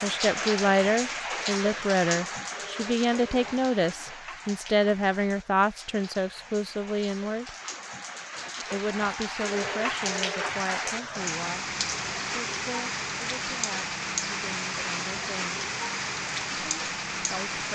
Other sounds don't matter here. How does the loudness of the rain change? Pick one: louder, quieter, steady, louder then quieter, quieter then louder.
quieter then louder.